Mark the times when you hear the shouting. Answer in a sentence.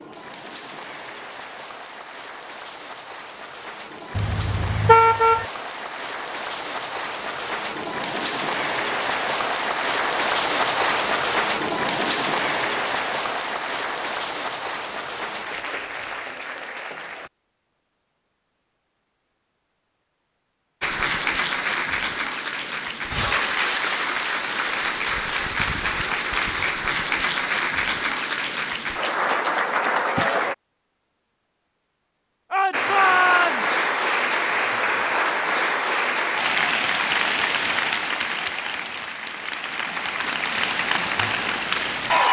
The shouting can be heard from 32.5 to 33.8 s.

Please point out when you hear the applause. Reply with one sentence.
You can hear the applause from 0.0 to 17.3 s, from 20.8 to 30.6 s and from 32.7 to 42.2 s.